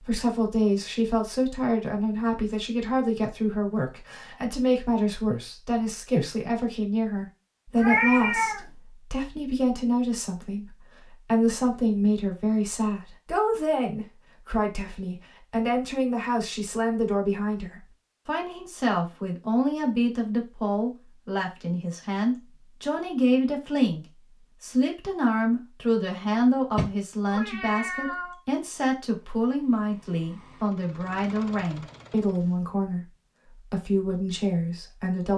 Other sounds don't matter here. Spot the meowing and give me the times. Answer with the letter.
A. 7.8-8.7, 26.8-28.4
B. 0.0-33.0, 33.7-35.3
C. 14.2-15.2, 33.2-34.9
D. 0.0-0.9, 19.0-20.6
A.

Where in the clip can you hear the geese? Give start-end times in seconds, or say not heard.
not heard.